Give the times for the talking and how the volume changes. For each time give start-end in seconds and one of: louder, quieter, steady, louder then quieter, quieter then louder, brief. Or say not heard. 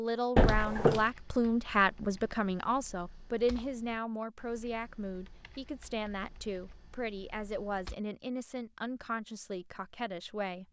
0.0-10.6 quieter.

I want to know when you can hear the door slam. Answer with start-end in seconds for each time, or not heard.
0.3-1.1.